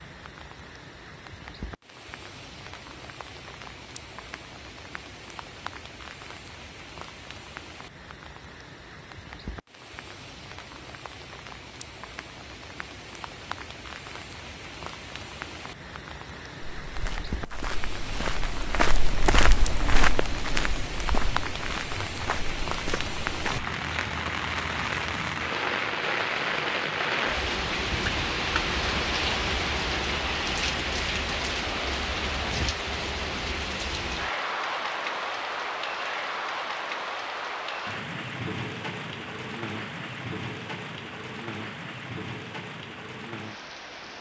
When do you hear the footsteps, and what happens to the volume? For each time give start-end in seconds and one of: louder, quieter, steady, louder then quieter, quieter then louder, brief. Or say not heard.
16.8-23.7 louder then quieter.